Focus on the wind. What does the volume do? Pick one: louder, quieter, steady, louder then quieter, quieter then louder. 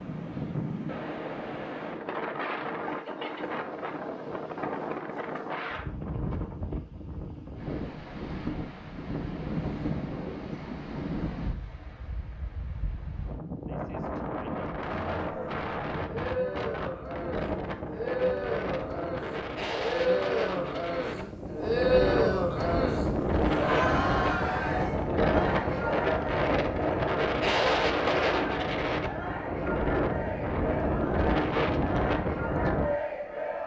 louder.